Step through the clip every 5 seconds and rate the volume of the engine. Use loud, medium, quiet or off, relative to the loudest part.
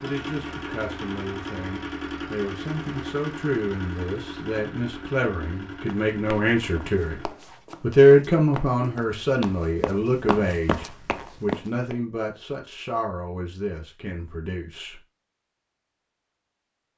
loud, medium, off, off.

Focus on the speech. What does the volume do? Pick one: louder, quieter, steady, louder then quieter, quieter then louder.
louder then quieter.